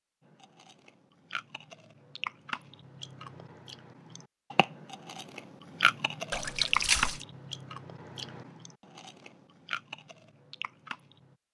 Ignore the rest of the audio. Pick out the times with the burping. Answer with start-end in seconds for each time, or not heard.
not heard.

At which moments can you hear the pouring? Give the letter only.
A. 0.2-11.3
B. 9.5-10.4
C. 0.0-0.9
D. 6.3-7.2
D.